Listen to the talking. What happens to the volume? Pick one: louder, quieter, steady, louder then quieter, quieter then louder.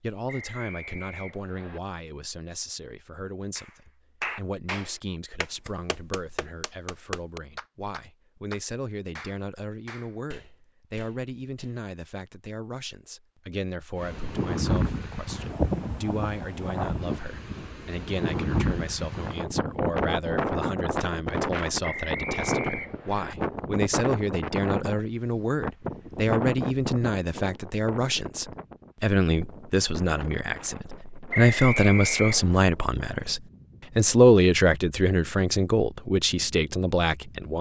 louder.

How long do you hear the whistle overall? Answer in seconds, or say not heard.
4 s.